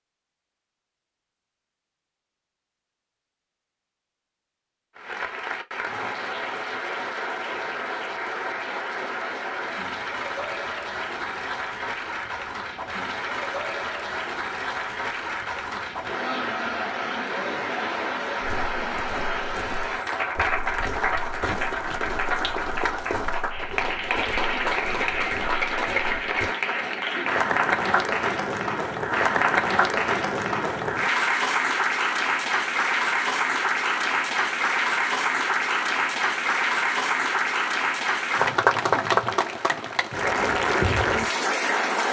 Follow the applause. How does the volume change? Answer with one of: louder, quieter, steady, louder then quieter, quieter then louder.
louder.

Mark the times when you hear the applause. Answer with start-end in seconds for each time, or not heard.
5.0-42.0.